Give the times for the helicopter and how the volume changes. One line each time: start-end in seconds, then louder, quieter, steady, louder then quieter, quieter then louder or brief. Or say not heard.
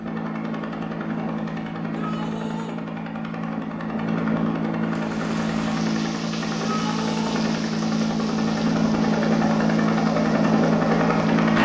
0.0-11.6 louder.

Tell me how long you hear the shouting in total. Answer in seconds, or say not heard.
2 s.